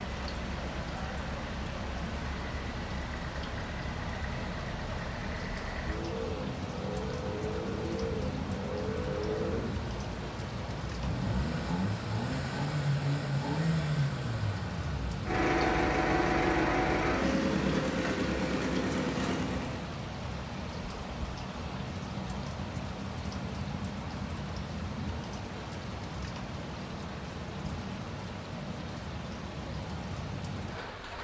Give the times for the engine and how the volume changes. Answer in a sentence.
You can hear the engine from 0.0 to 19.9 s, getting louder.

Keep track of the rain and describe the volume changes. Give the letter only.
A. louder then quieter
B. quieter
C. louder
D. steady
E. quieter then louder
D.